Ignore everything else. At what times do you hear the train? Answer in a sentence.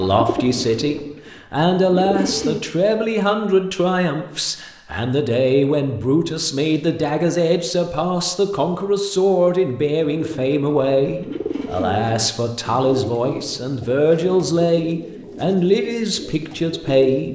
The train can't be heard in this clip.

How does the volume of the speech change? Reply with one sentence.
The volume of the speech stays about the same.